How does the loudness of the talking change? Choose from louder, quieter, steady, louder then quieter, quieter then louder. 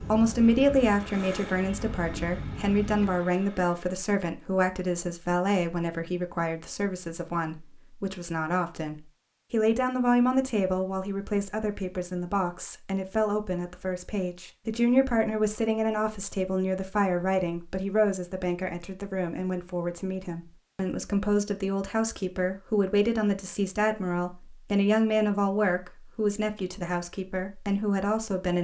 steady.